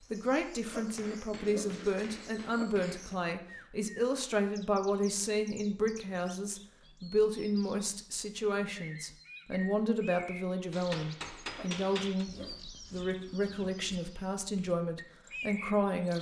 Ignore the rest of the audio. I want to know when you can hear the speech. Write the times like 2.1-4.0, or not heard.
0.1-16.1.